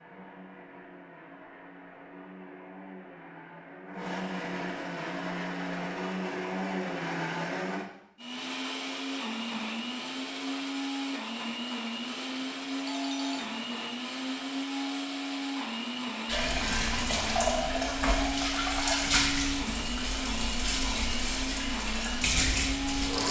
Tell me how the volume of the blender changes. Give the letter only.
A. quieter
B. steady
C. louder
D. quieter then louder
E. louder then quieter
C.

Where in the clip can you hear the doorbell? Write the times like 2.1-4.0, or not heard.
12.8-13.6.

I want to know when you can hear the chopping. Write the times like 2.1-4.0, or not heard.
not heard.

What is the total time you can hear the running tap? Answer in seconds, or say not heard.
7 s.